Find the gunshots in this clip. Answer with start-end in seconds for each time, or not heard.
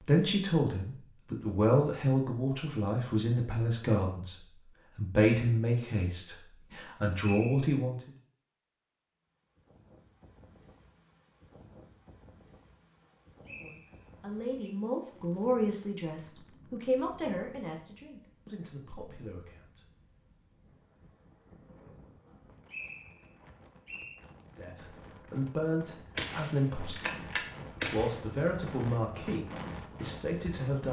26.1-28.1.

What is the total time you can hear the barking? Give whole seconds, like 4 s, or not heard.
not heard.